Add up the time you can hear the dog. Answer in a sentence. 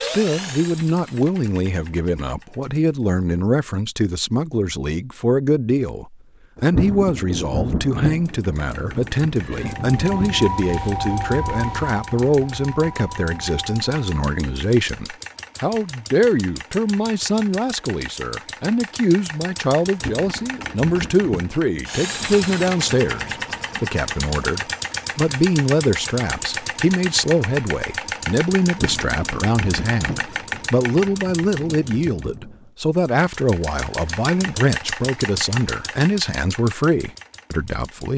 The dog can't be heard in this clip.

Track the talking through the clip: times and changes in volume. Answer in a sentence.
The talking can be heard from 0.0 to 38.1 s, at a steady volume.